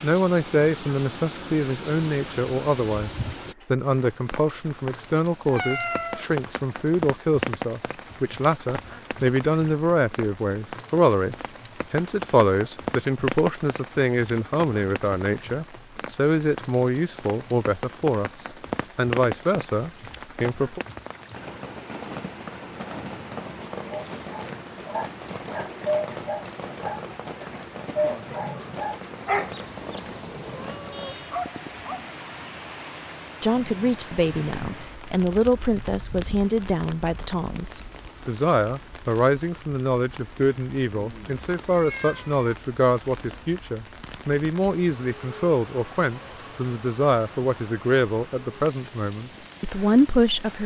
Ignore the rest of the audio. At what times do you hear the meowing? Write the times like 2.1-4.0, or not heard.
5.5-6.2, 29.2-31.1, 41.6-42.5.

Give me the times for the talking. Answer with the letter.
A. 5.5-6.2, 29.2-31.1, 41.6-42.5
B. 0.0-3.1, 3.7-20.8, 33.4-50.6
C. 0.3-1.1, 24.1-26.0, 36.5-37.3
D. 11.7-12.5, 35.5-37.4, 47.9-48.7
B.